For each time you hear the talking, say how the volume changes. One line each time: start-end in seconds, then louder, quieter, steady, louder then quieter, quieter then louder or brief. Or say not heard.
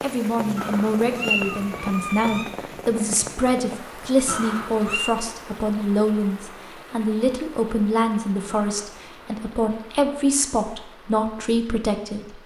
0.0-12.4 steady.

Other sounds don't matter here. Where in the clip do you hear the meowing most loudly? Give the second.
1 s.